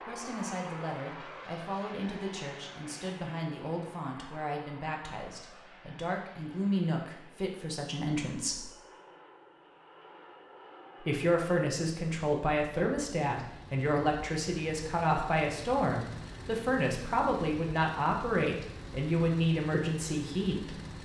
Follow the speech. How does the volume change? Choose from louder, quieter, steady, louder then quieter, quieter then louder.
louder.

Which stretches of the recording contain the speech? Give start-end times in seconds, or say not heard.
0.0-8.7, 11.0-20.8.